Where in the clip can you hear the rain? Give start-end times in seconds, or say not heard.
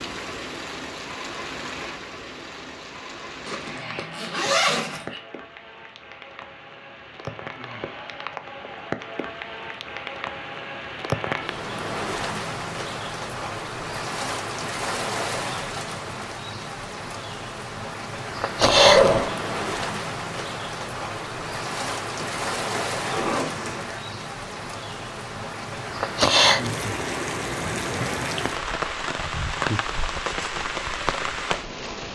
0.0-32.1.